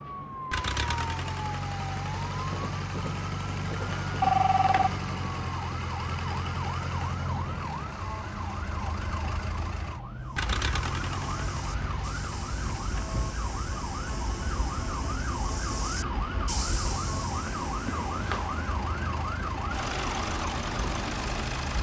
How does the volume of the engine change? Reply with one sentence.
The loudness of the engine goes down, then up.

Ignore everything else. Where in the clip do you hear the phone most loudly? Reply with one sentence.
The loudest moment of the phone is at 4 seconds.